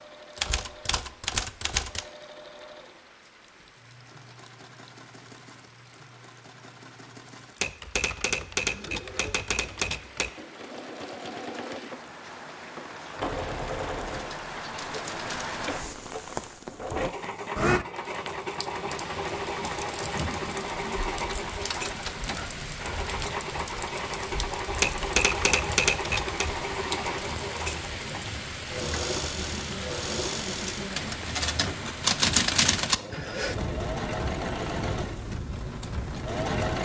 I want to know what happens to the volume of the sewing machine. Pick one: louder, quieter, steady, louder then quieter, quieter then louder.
louder.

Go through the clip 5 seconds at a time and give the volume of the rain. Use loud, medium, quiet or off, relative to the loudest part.
quiet, quiet, medium, loud, loud, loud, loud, loud.